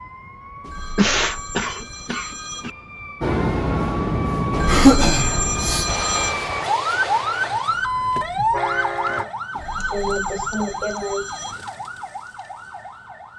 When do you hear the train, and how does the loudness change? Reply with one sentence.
The train can be heard from 3.2 to 9.2 s, getting quieter.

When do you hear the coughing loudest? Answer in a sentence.
The loudest moment of the coughing is at 5 seconds.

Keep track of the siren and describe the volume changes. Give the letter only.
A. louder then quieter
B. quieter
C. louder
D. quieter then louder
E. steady
A.